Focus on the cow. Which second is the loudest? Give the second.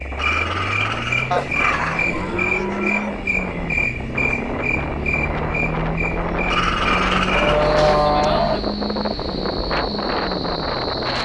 8 s.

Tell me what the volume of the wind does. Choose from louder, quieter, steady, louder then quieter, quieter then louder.
louder.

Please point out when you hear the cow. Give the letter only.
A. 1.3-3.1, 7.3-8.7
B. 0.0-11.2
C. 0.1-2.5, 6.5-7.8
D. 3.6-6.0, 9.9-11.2
A.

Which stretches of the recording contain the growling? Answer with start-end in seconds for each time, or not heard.
0.1-2.5, 6.5-7.8.